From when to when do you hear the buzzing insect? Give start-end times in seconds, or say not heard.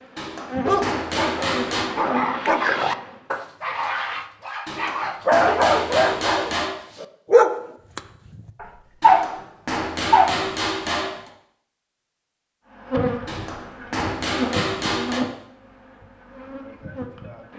0.0-3.3, 12.8-17.5.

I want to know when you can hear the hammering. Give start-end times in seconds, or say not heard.
0.1-1.9, 4.7-6.8, 9.0-11.3, 13.2-15.2.